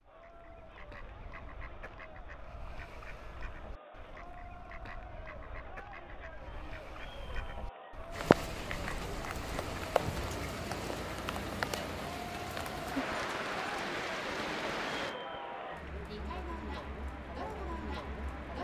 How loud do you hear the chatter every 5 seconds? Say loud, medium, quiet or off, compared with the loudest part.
medium, medium, loud, loud.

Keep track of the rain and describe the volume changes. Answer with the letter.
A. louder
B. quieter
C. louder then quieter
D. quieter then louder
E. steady
B.